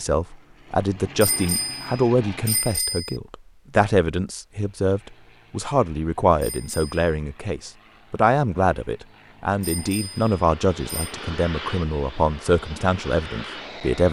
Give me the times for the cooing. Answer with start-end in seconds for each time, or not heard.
not heard.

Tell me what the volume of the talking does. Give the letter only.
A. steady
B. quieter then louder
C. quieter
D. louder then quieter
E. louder
A.